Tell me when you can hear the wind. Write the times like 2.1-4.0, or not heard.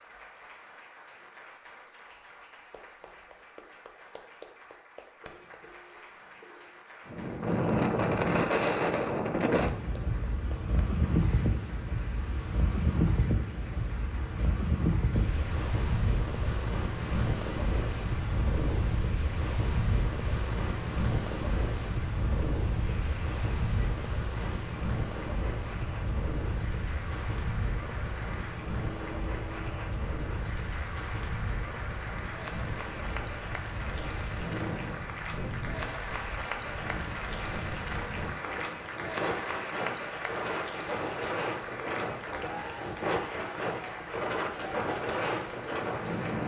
7.0-46.4.